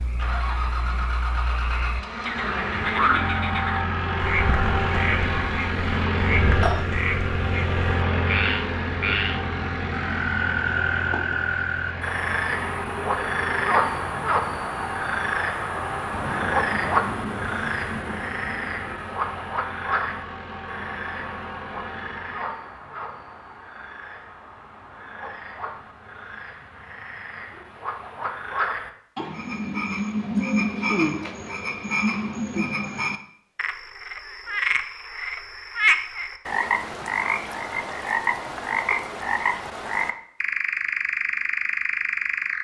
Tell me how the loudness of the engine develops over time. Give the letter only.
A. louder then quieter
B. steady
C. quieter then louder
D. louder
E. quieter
E.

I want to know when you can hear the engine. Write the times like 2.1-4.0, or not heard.
0.0-22.6.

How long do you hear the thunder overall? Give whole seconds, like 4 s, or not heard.
3 s.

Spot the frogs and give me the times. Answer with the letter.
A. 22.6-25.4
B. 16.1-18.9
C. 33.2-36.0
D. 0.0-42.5
D.